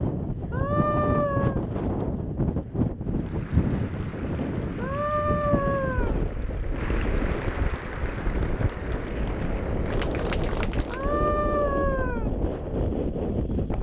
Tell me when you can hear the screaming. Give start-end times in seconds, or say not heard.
0.5-1.6, 4.8-6.2, 10.9-12.3.